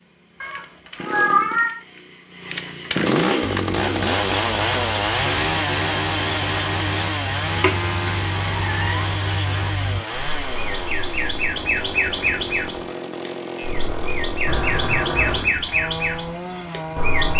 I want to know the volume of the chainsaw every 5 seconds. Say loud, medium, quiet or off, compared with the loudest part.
loud, loud, medium, medium.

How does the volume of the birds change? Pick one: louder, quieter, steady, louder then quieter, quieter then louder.
louder.